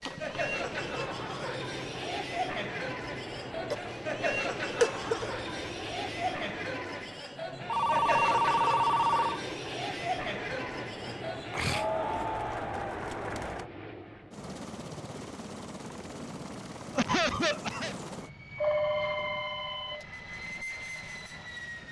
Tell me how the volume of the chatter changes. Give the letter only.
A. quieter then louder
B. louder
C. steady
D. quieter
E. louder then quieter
C.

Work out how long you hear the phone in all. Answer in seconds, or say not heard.
4 s.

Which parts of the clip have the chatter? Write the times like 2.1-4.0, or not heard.
0.0-13.7.